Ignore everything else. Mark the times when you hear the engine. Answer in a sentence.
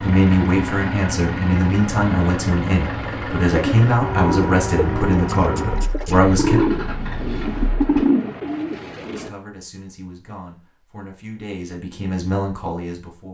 The engine can be heard from 0.0 to 8.1 s.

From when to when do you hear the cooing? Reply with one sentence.
You can hear the cooing from 3.5 to 9.3 s.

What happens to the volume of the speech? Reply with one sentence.
The volume of the speech goes down, then up.